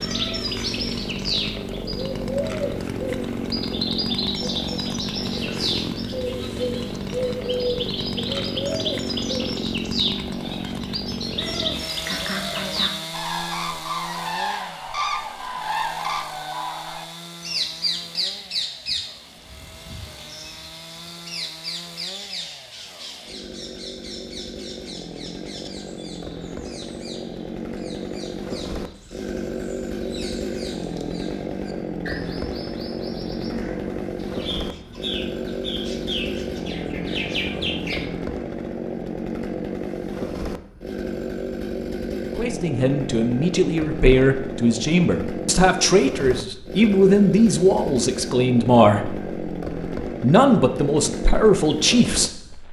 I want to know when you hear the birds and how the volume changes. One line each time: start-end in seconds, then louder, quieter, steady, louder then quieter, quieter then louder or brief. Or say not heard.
0.0-38.1 quieter then louder.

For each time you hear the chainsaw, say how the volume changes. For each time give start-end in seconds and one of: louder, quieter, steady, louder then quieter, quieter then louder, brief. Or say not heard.
0.0-52.6 quieter then louder.